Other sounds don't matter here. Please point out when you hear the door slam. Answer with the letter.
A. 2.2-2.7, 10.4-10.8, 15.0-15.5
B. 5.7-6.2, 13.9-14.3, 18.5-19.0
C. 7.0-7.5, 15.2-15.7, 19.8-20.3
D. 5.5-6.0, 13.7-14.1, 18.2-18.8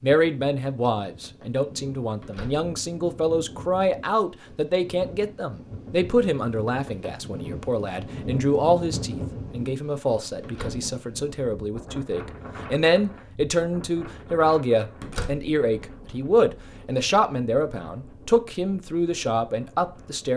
A.